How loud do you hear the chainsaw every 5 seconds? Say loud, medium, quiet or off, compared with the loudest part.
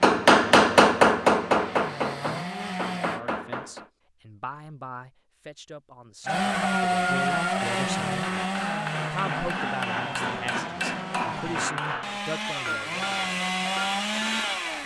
medium, loud, loud.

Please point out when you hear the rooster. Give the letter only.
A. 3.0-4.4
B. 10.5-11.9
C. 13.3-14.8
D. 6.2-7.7
D.